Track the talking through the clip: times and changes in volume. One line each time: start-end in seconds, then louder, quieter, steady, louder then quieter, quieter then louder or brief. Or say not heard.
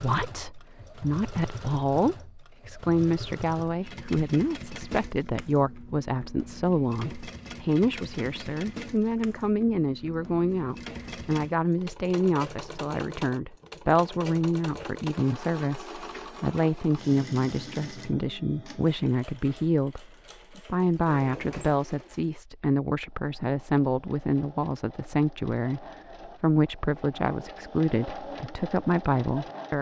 0.0-29.7 steady.